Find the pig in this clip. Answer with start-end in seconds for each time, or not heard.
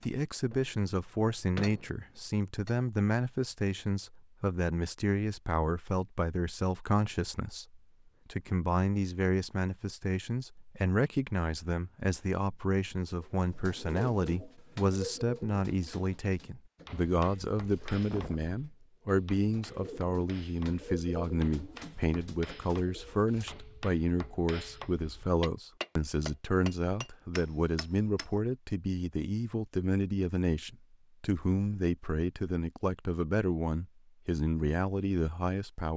not heard.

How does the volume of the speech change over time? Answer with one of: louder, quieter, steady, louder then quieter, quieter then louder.
steady.